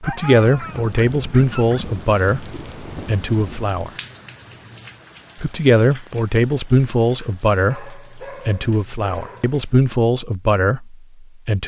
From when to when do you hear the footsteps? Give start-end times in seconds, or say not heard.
not heard.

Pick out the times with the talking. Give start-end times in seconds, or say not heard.
0.0-3.9, 5.4-11.6.